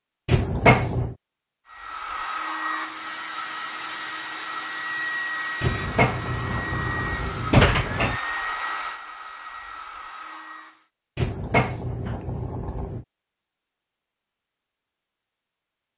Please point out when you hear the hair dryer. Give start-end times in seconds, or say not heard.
1.6-10.8.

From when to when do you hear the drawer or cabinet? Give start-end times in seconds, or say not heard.
0.2-1.1, 5.6-8.2, 11.2-13.1.